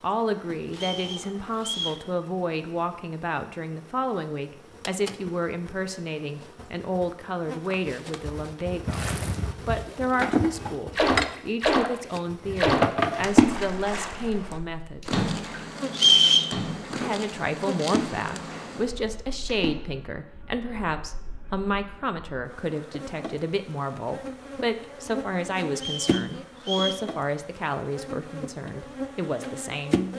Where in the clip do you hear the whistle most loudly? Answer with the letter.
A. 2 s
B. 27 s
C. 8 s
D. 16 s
D.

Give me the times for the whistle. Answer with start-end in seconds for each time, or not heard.
0.7-2.0, 15.9-16.5, 25.8-27.1.